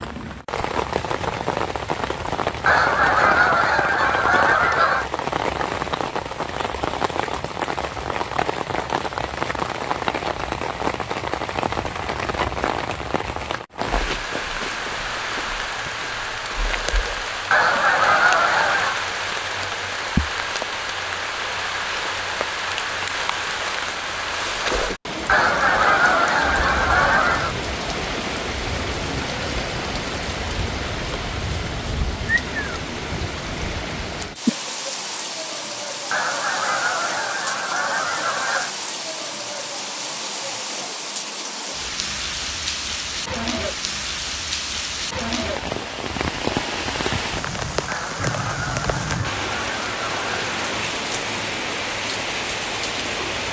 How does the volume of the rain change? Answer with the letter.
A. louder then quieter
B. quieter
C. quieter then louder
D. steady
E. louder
D.